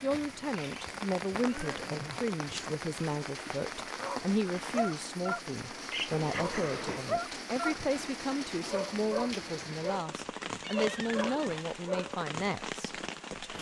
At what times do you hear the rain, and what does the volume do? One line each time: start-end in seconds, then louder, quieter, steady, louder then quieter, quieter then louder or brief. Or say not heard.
0.0-13.5 steady.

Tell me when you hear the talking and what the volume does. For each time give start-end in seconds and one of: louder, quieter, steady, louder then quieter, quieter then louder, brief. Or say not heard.
0.0-13.5 steady.